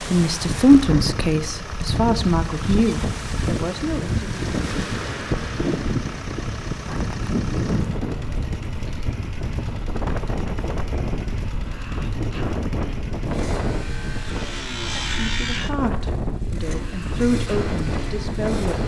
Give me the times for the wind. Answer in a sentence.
The wind can be heard from 0.0 to 18.8 s.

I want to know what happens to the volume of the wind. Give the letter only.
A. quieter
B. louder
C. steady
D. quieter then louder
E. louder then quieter
C.